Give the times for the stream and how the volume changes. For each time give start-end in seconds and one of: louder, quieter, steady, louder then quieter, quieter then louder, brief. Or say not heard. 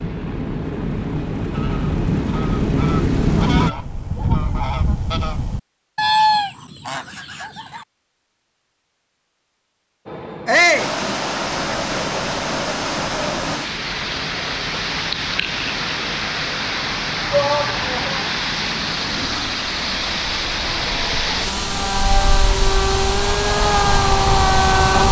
10.7-25.0 steady.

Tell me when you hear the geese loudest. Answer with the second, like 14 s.
6 s.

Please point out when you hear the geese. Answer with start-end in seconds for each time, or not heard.
1.5-7.8.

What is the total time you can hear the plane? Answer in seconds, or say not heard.
19 s.